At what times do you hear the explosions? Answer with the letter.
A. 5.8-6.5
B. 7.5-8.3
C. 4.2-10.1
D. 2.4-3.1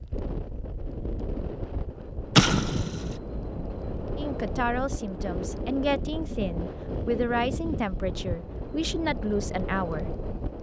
D.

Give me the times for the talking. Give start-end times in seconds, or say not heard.
4.2-10.1.